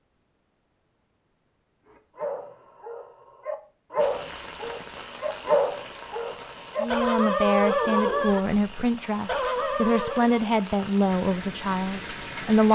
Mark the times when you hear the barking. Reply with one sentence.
You can hear the barking from 1.9 to 10.4 s.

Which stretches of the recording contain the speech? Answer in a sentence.
You can hear the speech from 6.8 to 12.7 s.